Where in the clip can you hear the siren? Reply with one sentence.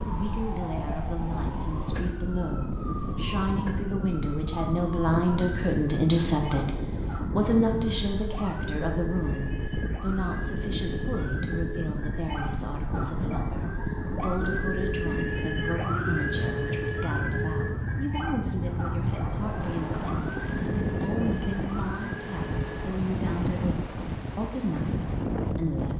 You can hear the siren from 0.0 to 23.0 s.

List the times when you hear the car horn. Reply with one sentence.
The car horn can be heard from 19.1 to 20.1 s.